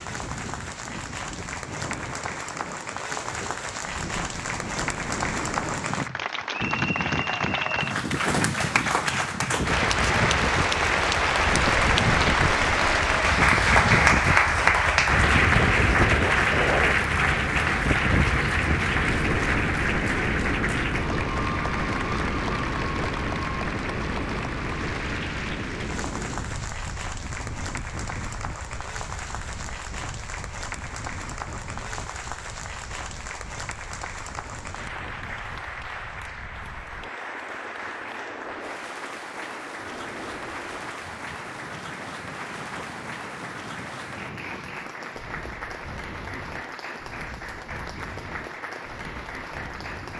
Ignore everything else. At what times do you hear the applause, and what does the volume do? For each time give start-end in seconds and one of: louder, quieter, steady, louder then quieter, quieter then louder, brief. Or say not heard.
0.0-50.1 louder then quieter.